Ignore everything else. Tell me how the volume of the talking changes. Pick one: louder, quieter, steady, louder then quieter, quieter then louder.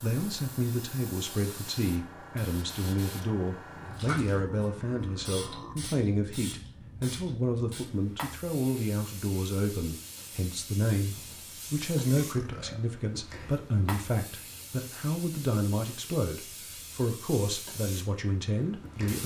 steady.